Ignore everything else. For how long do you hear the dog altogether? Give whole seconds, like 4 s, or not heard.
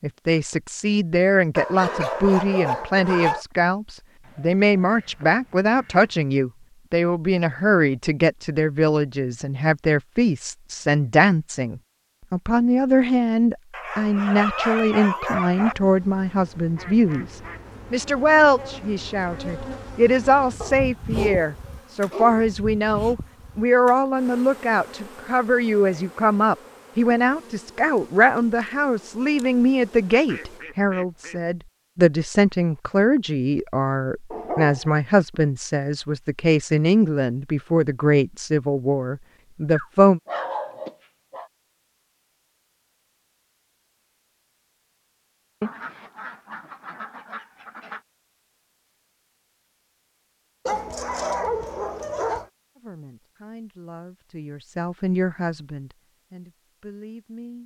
10 s.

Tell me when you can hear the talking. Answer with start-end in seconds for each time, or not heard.
0.0-40.2, 52.8-57.6.